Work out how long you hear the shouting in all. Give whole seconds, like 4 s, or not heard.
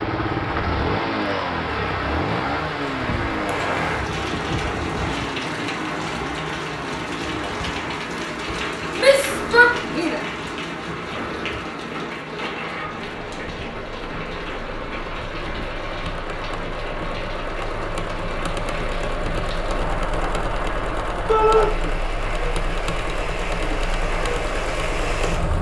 2 s.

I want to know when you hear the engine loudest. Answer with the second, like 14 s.
1 s.